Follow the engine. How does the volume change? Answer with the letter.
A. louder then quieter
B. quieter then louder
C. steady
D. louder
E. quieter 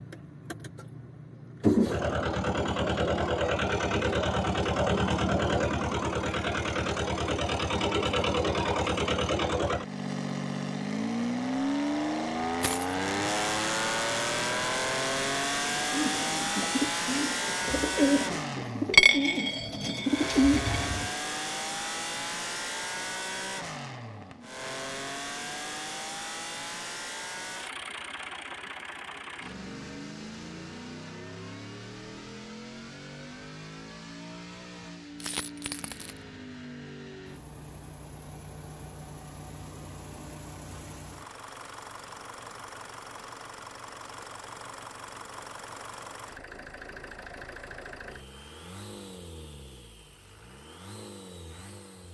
E.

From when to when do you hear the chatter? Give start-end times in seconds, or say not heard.
not heard.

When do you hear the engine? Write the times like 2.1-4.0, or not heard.
0.0-52.0.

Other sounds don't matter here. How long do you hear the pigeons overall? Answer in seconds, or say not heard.
5 s.